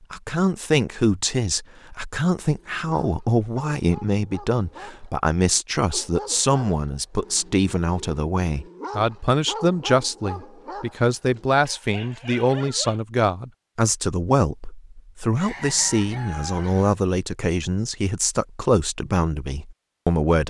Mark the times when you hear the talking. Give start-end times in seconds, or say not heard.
0.1-20.4.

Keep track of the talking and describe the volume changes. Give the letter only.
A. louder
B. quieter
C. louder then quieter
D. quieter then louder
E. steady
E.